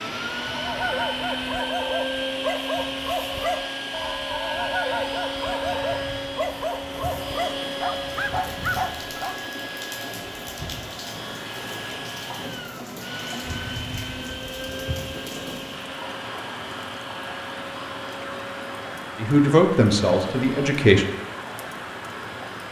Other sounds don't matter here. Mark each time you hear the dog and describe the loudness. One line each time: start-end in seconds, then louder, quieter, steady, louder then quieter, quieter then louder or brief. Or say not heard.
0.4-9.4 steady.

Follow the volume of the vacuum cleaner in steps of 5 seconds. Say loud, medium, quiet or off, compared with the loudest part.
loud, loud, medium, medium, quiet.